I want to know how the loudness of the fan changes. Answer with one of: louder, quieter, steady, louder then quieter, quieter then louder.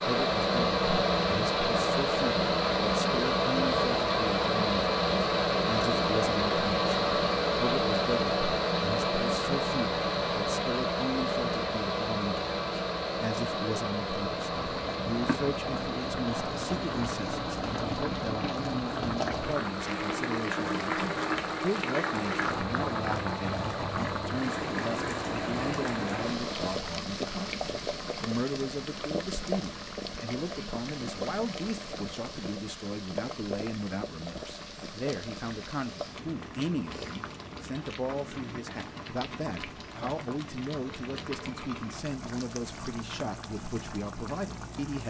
quieter.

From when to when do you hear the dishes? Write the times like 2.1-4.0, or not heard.
not heard.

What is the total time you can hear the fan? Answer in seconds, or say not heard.
27 s.